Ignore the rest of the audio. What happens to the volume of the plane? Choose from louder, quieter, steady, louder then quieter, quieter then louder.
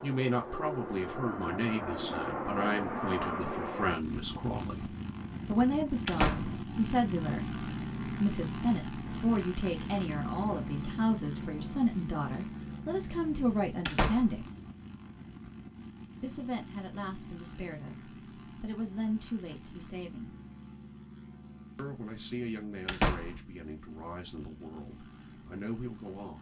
quieter.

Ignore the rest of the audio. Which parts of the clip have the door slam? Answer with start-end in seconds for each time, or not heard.
6.0-6.6, 13.8-14.3, 22.9-23.4.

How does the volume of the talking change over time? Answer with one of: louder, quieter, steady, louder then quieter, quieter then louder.
quieter.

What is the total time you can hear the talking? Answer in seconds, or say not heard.
23 s.